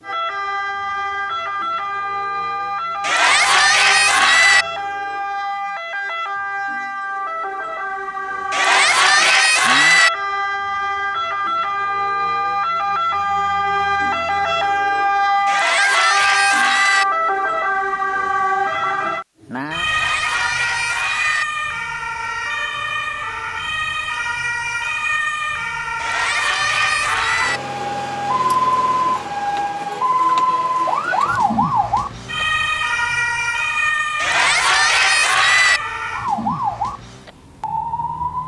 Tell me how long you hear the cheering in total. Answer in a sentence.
The cheering can be heard for 10 seconds in total.